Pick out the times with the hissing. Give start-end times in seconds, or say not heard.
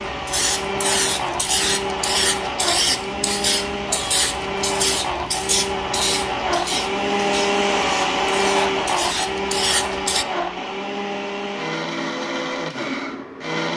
0.0-10.2.